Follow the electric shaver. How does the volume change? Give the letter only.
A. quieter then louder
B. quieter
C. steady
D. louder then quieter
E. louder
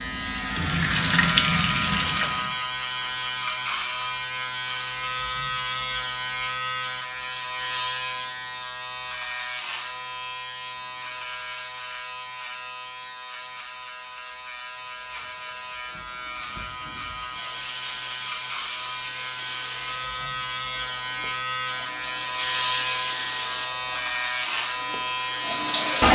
A.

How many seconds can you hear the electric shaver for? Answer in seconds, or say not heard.
26 s.